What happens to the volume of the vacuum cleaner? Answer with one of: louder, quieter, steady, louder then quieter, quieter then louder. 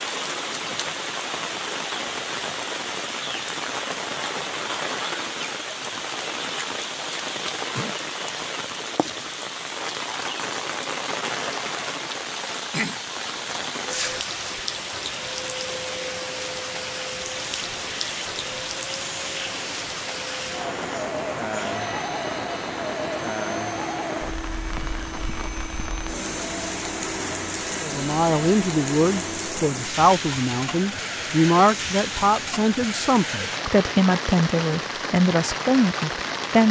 steady.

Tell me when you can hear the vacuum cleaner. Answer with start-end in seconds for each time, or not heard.
13.3-29.6.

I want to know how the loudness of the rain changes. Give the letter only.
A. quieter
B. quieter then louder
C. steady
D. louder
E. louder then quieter
C.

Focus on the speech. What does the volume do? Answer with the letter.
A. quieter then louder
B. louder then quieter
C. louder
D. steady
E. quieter
D.